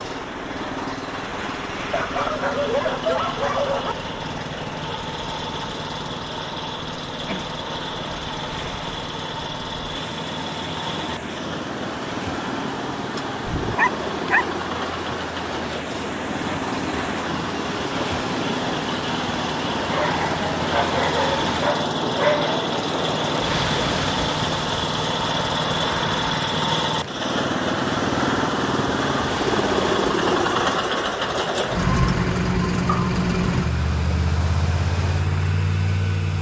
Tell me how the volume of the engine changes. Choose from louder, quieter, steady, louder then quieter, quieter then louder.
louder.